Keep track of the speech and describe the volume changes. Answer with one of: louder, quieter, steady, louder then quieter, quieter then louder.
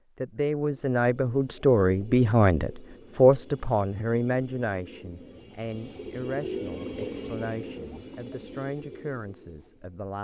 quieter.